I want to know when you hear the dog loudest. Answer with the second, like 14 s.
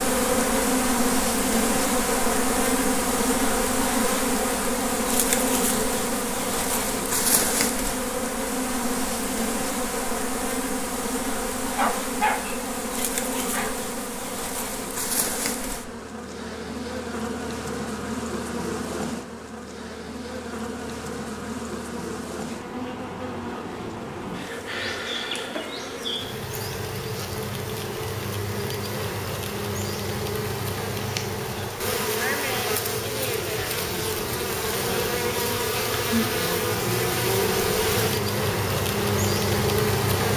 12 s.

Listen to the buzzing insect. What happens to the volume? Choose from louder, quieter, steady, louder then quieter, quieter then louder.
quieter then louder.